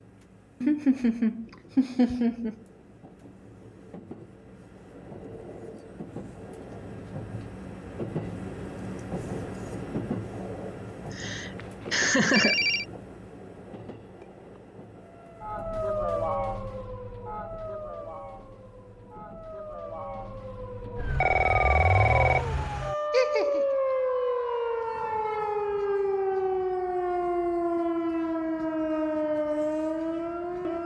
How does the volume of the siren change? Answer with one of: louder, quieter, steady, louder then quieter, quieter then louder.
quieter then louder.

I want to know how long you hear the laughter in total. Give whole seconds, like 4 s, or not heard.
4 s.